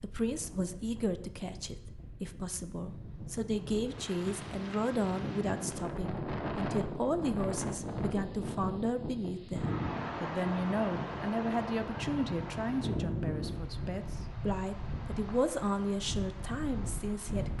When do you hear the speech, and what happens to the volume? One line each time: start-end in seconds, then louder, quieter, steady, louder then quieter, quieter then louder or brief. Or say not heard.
0.0-17.5 steady.